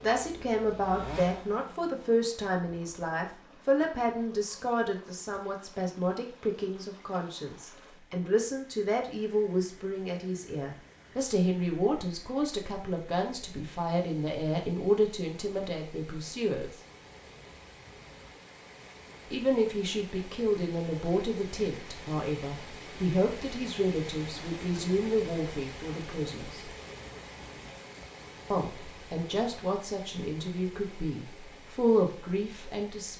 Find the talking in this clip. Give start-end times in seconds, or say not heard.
0.0-16.7, 19.3-26.6, 28.5-33.1.